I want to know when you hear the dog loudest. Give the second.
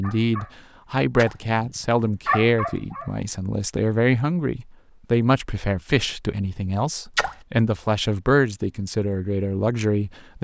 2 s.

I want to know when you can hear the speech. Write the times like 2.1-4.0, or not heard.
0.0-10.4.